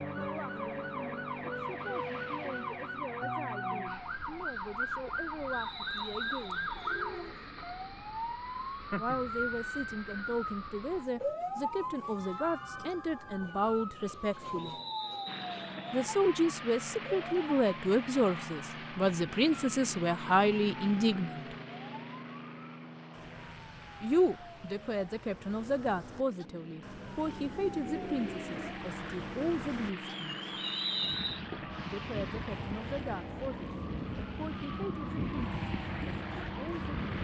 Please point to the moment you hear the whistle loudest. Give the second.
31 s.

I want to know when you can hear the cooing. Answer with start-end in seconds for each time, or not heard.
5.9-7.5, 27.2-28.8.